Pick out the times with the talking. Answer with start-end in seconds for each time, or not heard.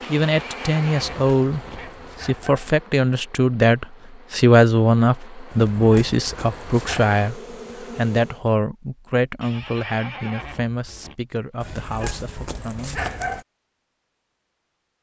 0.1-13.2.